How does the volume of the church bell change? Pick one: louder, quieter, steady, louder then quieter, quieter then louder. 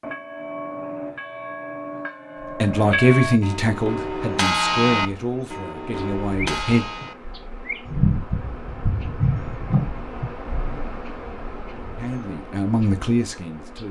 louder then quieter.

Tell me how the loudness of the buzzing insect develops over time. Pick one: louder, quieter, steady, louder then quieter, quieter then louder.
louder then quieter.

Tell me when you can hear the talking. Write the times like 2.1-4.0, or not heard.
2.6-6.8, 11.9-13.8.